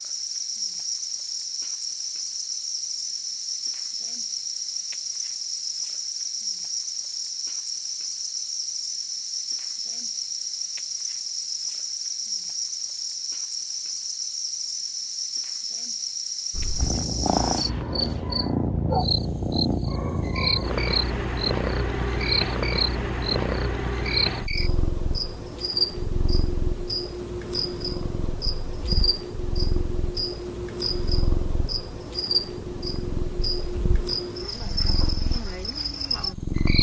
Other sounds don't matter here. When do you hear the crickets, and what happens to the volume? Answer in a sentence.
You can hear the crickets from 0.0 to 36.7 s, at a steady volume.